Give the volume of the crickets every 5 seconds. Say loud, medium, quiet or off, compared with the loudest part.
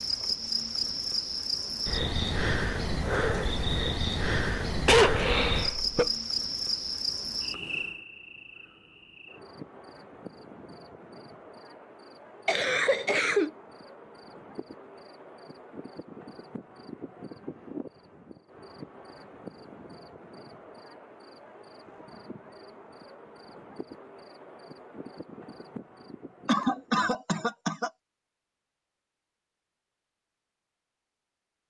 loud, loud, quiet, quiet, quiet, quiet, off.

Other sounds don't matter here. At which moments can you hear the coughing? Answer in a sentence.
You can hear the coughing from 4.8 to 6.1 s, from 12.4 to 13.5 s and from 26.4 to 27.9 s.